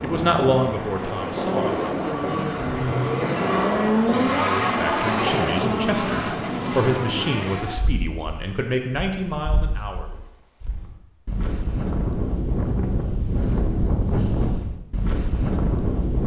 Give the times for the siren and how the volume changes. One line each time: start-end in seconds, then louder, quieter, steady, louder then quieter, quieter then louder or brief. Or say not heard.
not heard.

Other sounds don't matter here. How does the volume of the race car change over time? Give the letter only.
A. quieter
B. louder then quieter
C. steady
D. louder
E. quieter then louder
B.